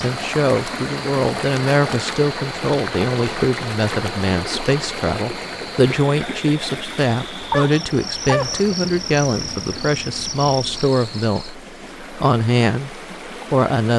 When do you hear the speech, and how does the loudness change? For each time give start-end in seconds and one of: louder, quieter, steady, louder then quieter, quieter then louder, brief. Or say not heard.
0.0-13.9 steady.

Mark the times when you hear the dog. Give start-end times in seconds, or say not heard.
7.5-8.6.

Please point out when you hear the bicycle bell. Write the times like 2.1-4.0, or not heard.
not heard.